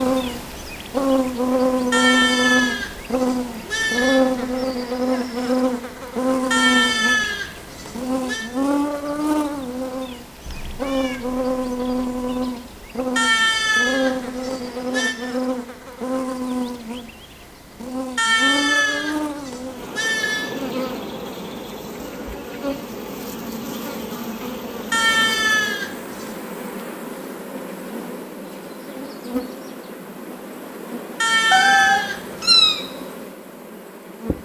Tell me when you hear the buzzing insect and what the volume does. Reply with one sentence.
You can hear the buzzing insect from 0.0 to 34.4 s, getting quieter.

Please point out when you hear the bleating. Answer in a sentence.
You can hear the bleating from 1.9 to 4.2 s, from 6.5 to 8.5 s, from 13.2 to 15.2 s, from 18.1 to 20.5 s, from 24.9 to 26.3 s and from 31.2 to 32.8 s.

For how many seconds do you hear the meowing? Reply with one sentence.
You can hear the meowing for 3 seconds altogether.